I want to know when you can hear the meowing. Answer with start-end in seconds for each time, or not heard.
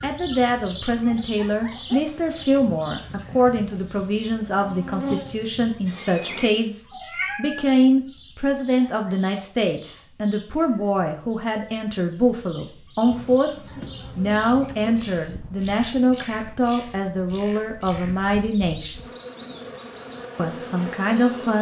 6.9-7.8.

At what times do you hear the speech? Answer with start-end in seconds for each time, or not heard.
0.0-18.9, 20.4-21.5.